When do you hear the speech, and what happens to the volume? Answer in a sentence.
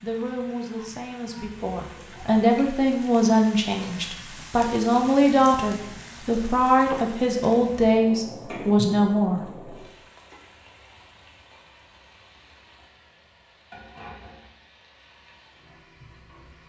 The speech can be heard from 0.0 to 9.7 s, getting louder.